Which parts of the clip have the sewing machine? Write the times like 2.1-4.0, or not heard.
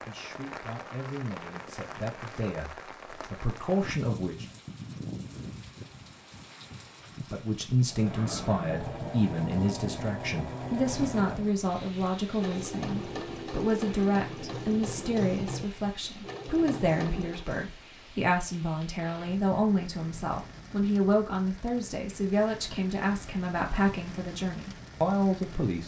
7.8-17.5.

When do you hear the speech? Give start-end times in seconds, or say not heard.
0.1-4.5, 7.3-25.8.